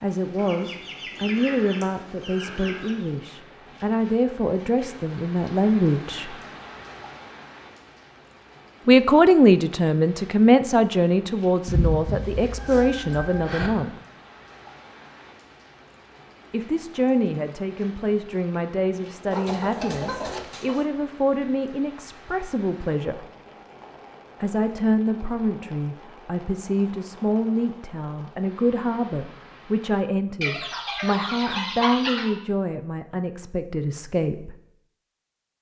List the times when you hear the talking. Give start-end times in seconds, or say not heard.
0.0-6.3, 8.8-13.9, 16.5-23.2, 24.4-34.5.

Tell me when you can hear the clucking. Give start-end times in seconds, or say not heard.
0.3-3.0, 11.7-13.7, 19.3-20.9, 30.4-32.4.